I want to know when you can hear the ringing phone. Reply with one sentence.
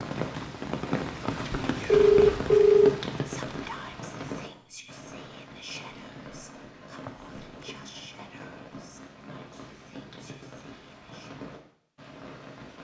You can hear the ringing phone from 1.2 to 3.0 s and from 7.0 to 7.8 s.